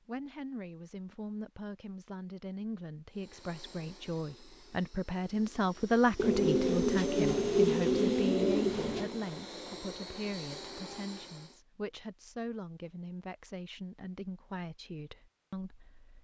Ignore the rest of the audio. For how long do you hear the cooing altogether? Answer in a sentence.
You can hear the cooing for 3 seconds altogether.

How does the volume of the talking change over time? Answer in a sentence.
The volume of the talking goes up, then down.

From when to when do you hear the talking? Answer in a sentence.
You can hear the talking from 0.1 to 16.1 s.